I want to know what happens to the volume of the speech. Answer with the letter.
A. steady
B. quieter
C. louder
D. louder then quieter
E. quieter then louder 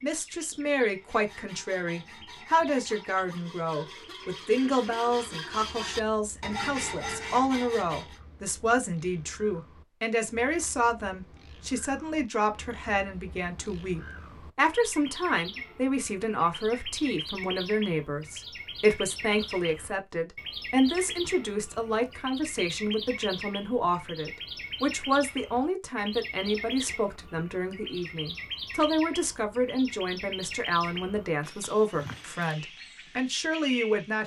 A.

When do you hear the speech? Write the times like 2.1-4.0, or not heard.
0.0-34.2.